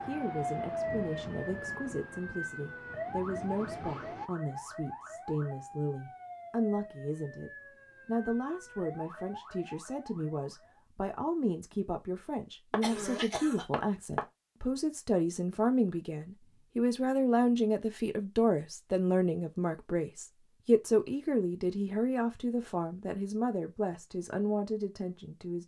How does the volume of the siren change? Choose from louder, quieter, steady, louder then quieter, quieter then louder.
quieter.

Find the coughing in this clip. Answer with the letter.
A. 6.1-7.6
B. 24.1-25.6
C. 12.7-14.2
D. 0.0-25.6
C.